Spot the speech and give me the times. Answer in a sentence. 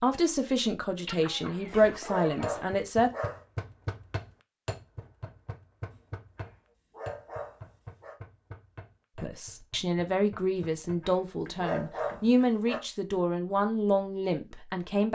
You can hear the speech from 0.0 to 3.1 s and from 9.2 to 15.0 s.